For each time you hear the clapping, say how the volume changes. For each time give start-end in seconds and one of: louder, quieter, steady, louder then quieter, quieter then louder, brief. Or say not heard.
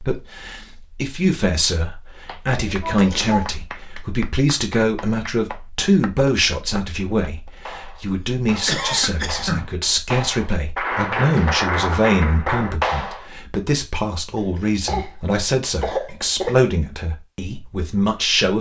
2.2-13.2 louder.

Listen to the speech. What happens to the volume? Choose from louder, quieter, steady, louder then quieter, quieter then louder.
steady.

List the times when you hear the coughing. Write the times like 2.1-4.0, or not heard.
2.5-3.5, 8.5-9.7, 14.3-16.7.